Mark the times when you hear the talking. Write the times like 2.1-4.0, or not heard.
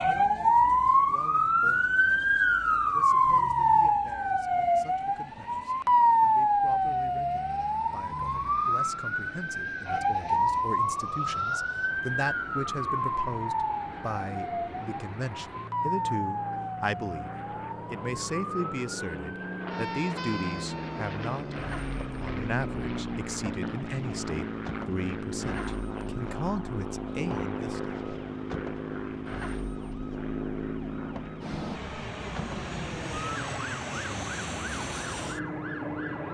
0.0-17.3, 17.9-27.9.